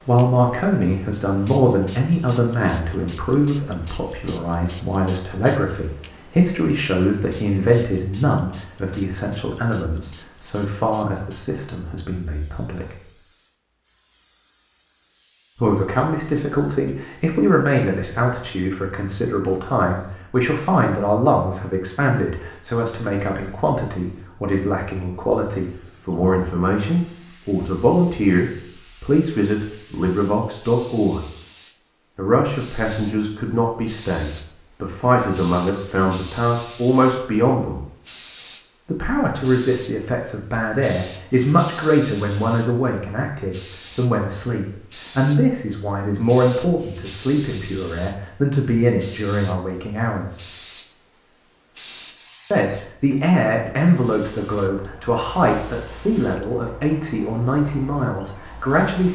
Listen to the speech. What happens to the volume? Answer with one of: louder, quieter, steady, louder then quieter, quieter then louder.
steady.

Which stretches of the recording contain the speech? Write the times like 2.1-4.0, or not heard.
0.1-12.9, 15.6-31.2, 32.1-37.8, 38.9-50.4, 52.5-59.0.